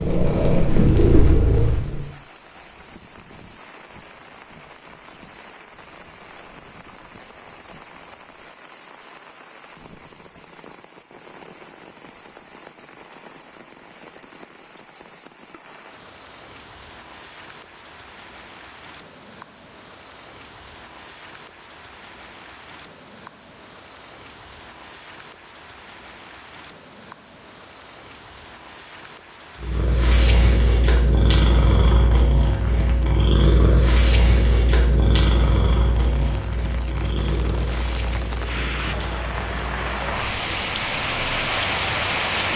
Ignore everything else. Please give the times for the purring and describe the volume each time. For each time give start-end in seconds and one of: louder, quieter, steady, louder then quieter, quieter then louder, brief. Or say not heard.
0.0-2.0 brief
29.6-42.3 quieter.